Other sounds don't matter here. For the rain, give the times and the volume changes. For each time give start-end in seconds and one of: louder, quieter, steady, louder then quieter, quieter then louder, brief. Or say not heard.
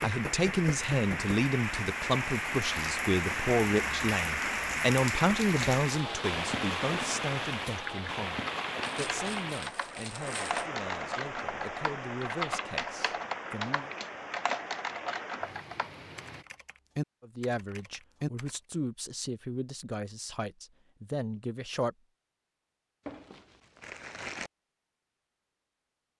0.0-16.4 quieter.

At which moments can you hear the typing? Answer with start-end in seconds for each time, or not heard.
7.8-18.6.